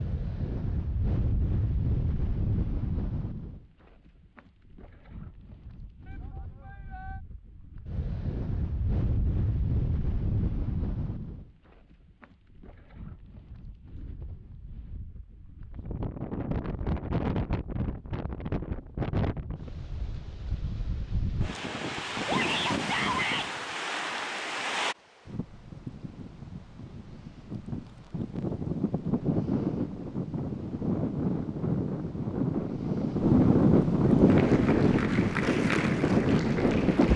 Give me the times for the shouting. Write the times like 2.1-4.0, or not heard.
6.0-7.2, 22.2-23.5.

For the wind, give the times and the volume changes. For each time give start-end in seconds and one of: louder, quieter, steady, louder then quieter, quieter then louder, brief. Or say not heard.
0.0-37.1 louder.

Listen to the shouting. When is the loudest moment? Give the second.
23 s.